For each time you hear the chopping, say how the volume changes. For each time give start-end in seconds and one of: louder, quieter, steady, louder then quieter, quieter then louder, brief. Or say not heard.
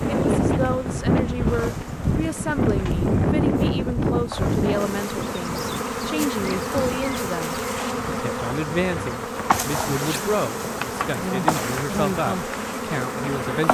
not heard.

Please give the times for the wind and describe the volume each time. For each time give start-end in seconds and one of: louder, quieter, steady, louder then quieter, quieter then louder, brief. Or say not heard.
0.0-13.7 quieter.